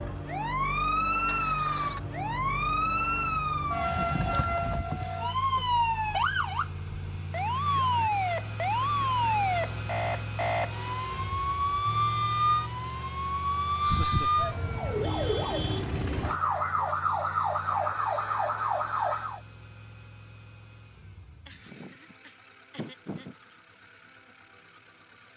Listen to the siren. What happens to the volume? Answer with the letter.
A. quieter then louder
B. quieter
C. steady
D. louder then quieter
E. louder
C.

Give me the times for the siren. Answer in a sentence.
You can hear the siren from 0.0 to 19.4 s.